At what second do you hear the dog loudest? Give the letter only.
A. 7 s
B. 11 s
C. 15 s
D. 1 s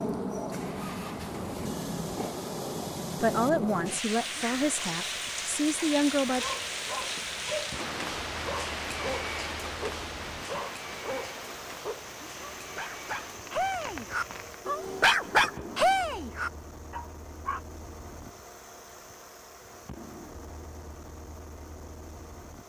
C.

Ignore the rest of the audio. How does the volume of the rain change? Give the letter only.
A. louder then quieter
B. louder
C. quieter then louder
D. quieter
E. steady
D.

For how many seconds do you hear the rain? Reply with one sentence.
You can hear the rain for 15 seconds altogether.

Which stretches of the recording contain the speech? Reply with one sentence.
The speech can be heard from 3.2 to 6.5 s.